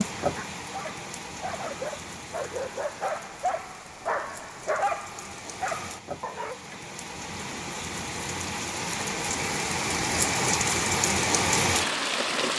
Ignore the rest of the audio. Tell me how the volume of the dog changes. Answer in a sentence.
The volume of the dog goes up, then down.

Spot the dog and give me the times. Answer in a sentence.
The dog can be heard from 0.1 to 6.6 s.